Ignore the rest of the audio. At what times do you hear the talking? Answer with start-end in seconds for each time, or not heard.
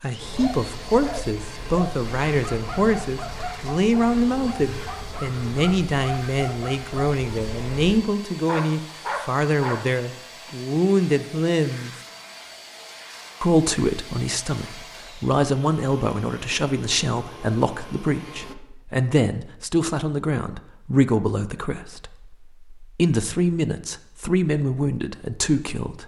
0.0-11.9, 13.4-26.0.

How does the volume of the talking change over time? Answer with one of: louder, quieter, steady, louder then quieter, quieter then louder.
steady.